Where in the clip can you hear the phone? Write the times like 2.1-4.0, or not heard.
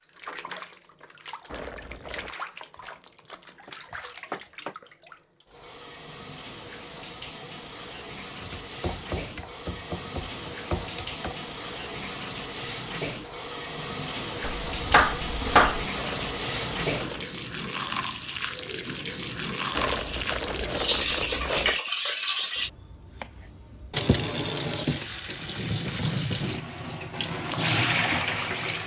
not heard.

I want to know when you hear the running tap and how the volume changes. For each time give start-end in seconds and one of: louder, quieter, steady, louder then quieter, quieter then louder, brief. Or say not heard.
0.0-28.8 louder.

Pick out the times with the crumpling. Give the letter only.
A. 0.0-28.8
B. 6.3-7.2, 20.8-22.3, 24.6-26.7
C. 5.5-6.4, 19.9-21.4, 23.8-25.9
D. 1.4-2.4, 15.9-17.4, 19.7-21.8
D.